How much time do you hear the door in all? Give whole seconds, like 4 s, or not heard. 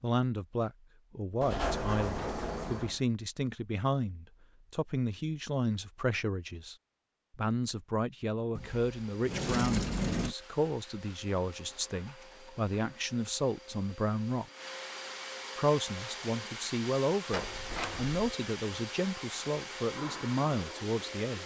4 s.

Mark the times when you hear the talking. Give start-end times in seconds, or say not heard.
0.0-6.8, 7.3-14.4, 15.6-21.4.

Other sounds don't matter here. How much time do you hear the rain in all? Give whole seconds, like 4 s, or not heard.
not heard.